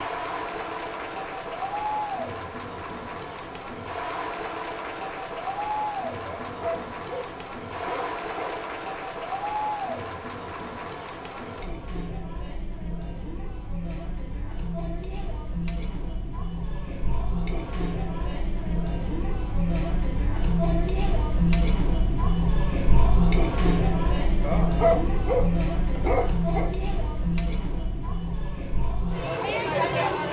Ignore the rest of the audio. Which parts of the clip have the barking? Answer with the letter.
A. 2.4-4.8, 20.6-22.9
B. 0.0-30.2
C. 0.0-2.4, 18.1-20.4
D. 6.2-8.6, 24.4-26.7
D.